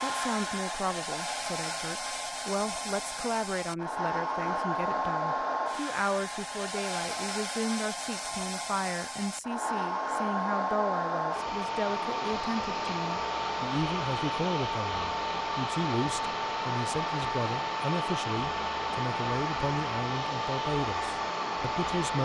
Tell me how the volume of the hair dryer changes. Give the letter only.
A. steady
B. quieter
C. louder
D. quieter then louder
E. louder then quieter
A.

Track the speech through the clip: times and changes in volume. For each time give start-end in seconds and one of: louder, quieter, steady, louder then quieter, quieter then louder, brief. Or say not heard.
0.0-22.2 steady.